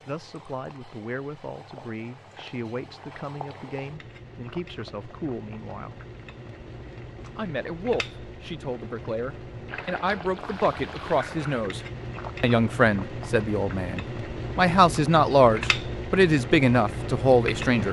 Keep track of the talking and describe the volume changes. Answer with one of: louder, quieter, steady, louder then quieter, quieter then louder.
louder.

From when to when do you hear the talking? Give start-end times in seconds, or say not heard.
0.1-6.0, 7.3-17.8.